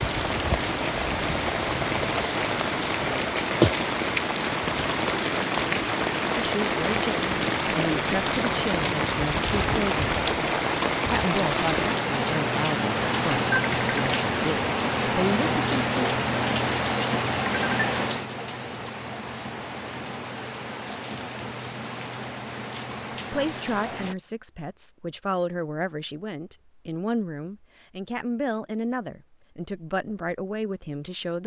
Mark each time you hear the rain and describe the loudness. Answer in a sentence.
The rain can be heard from 0.0 to 24.1 s, getting quieter.